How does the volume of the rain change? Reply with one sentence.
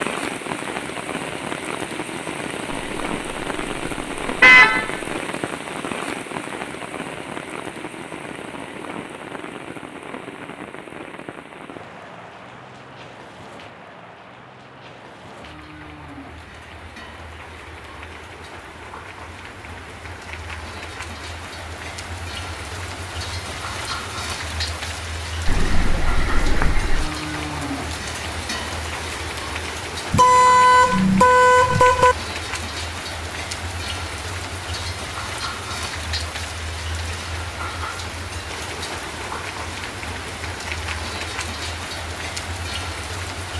The volume of the rain goes down, then up.